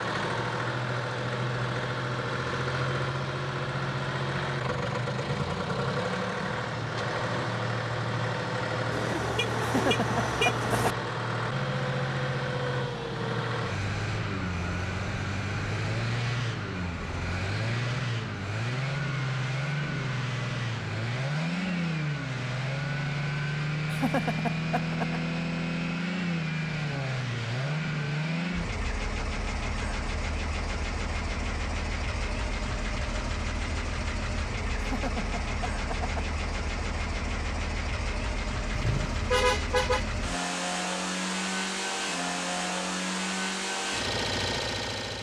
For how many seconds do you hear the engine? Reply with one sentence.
The engine can be heard for 45 seconds in total.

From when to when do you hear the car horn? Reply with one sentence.
The car horn can be heard from 8.9 to 10.9 s and from 38.7 to 40.2 s.